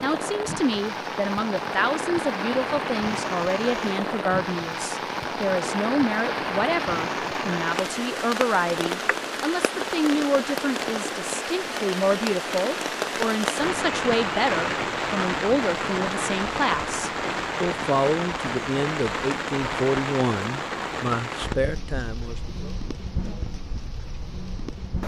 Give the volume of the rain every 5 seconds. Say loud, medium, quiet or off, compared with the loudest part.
loud, loud, loud, loud, medium.